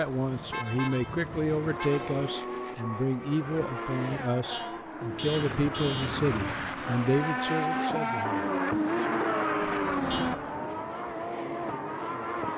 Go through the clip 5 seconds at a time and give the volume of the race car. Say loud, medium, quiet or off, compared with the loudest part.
medium, loud, loud.